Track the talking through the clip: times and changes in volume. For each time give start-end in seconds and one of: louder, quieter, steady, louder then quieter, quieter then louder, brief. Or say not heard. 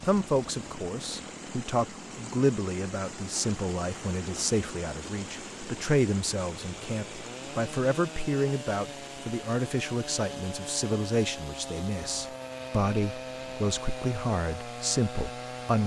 0.1-15.8 steady.